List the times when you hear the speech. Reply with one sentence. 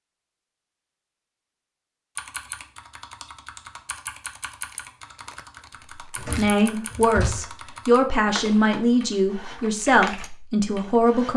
You can hear the speech from 6.3 to 11.3 s.